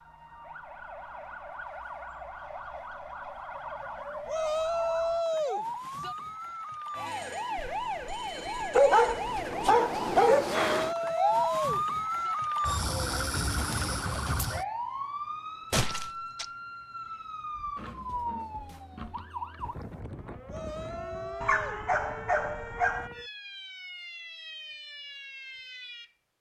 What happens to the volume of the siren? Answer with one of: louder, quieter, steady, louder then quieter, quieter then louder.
louder then quieter.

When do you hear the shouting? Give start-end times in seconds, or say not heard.
4.2-6.2, 10.7-12.3, 20.4-21.9.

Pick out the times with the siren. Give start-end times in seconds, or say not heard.
0.0-26.1.